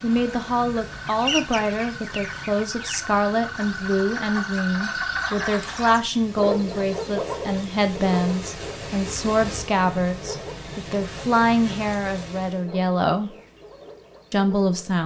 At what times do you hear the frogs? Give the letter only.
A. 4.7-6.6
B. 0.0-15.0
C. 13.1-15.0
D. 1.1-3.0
B.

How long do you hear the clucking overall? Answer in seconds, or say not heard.
2 s.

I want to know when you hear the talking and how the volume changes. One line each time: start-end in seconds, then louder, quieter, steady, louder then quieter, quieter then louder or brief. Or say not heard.
0.0-13.3 steady
14.3-15.0 brief.